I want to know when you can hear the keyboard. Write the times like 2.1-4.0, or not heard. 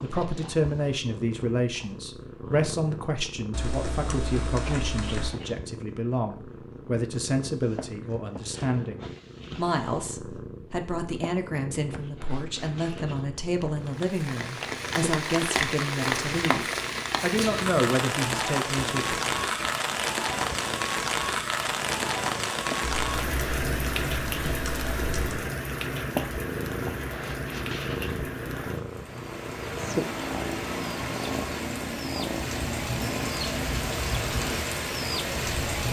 3.5-5.3, 22.9-25.4.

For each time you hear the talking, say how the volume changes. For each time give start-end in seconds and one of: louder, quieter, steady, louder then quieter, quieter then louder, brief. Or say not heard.
0.0-19.1 steady.